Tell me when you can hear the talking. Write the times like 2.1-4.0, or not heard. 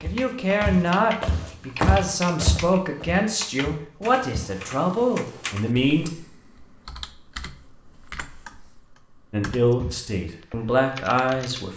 0.0-6.1, 9.3-11.7.